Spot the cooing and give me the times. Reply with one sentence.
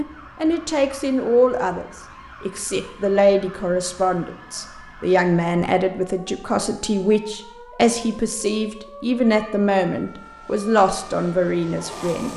You can't hear the cooing here.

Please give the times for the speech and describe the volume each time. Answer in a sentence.
The speech can be heard from 0.0 to 12.3 s, at a steady volume.